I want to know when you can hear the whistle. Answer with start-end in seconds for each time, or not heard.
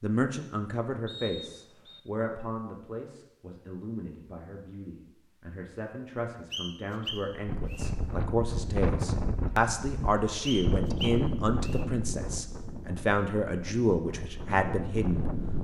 1.1-2.0, 6.5-7.9, 10.4-11.8.